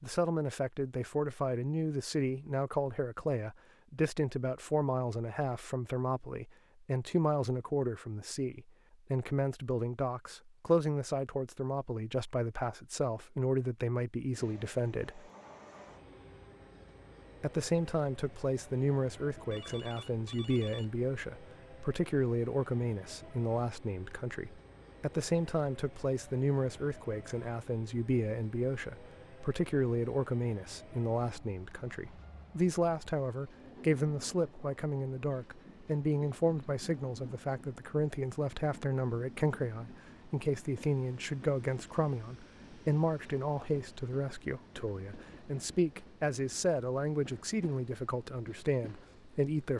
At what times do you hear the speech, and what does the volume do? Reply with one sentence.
The speech can be heard from 0.0 to 15.3 s, at a steady volume; and from 17.4 to 49.7 s, at a steady volume.